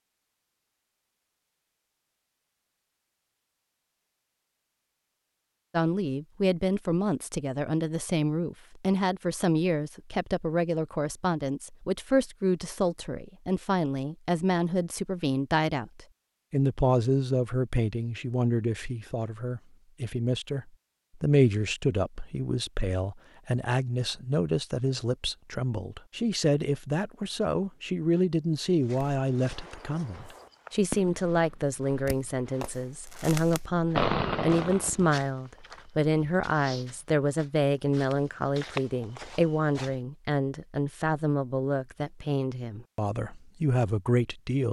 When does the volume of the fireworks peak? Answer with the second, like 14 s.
34 s.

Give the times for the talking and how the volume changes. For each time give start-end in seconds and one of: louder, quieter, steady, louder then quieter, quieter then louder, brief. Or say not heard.
5.7-44.6 steady.